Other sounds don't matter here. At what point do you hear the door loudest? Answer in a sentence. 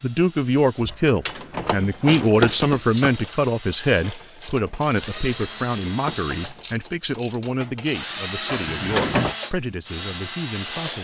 The loudest moment of the door is at 9 seconds.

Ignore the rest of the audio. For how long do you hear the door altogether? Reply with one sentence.
You can hear the door for 3 seconds altogether.